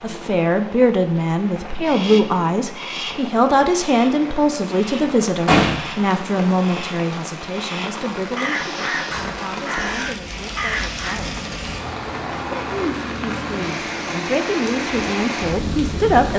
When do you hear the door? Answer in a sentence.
You can hear the door from 5.0 to 6.0 s and from 9.1 to 9.5 s.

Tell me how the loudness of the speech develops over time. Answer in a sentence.
The volume of the speech goes down, then up.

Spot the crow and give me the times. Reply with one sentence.
The crow can be heard from 1.8 to 11.2 s.